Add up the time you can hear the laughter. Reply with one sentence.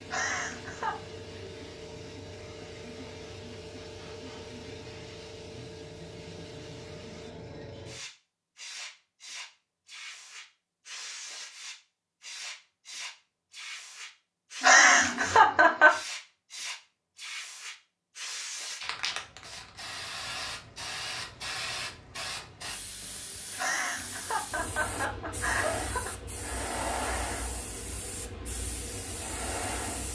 You can hear the laughter for 5 seconds altogether.